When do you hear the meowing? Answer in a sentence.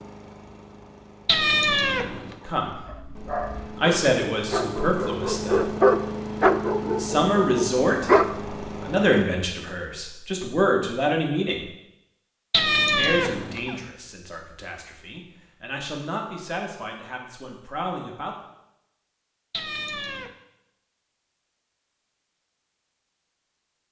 You can hear the meowing from 1.2 to 2.4 s, from 12.5 to 13.8 s and from 19.5 to 20.3 s.